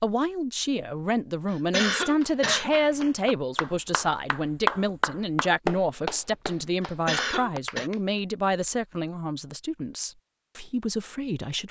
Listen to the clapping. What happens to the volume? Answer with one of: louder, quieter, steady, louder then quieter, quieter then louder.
louder then quieter.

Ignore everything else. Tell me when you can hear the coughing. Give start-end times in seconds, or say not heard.
1.5-2.7, 6.8-7.9.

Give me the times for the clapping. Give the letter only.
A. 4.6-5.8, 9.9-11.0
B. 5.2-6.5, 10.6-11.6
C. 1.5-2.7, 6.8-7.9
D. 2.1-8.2
D.